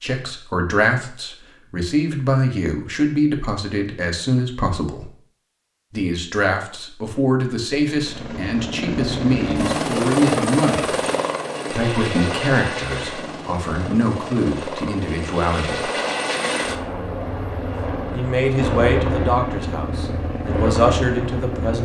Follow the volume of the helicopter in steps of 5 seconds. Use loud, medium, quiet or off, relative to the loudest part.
off, loud, loud, loud, loud.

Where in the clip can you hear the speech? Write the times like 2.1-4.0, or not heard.
0.0-5.1, 5.9-10.9, 11.7-15.9, 18.1-21.8.